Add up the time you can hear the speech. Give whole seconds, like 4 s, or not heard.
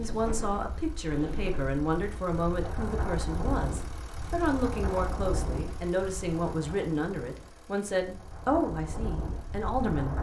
10 s.